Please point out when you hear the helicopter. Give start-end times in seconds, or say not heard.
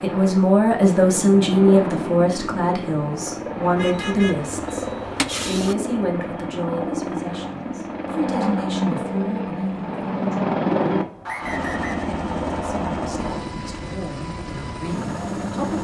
0.0-15.7.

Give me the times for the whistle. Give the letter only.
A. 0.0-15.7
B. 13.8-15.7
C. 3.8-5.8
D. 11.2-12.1
D.